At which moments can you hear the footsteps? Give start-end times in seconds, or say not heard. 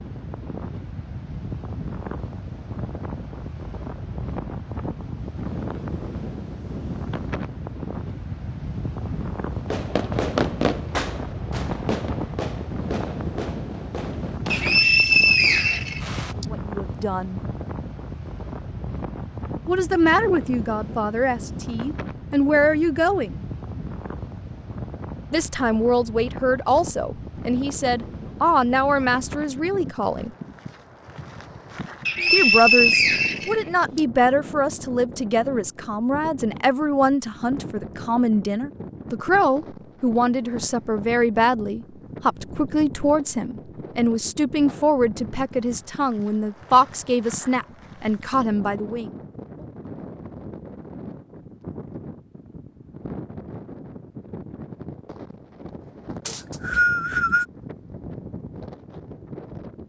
not heard.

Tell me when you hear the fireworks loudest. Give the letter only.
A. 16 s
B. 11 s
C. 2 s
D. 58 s
B.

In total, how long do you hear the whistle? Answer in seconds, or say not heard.
5 s.